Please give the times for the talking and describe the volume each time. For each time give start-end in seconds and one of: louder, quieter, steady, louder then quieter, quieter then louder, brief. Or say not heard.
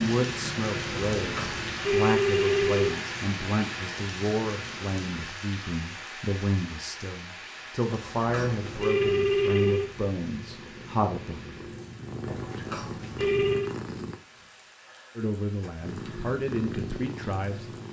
0.0-11.4 steady
15.2-17.8 brief.